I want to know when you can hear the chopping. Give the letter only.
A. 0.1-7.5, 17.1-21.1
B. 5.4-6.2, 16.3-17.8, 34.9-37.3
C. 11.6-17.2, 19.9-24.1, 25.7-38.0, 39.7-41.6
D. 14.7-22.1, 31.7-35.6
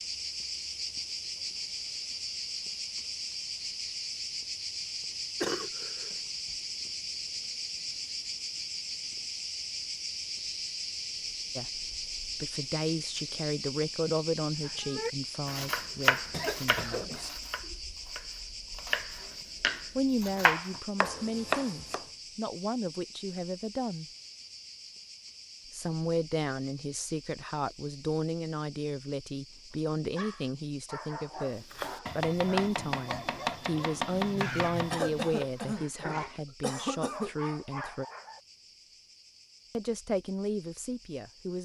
D.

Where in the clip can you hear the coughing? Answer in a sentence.
You can hear the coughing from 5.4 to 6.2 s, from 16.3 to 17.8 s and from 34.9 to 37.3 s.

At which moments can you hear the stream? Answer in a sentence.
You can't hear the stream here.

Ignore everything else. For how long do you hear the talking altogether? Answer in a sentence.
The talking can be heard for 24 seconds in total.